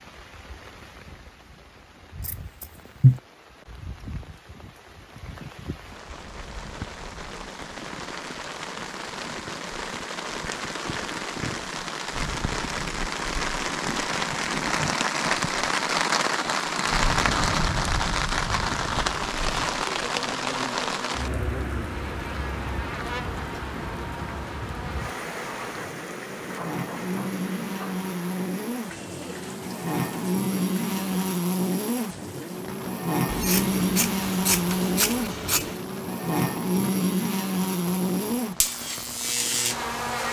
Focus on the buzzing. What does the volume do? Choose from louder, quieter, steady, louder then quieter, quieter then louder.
louder.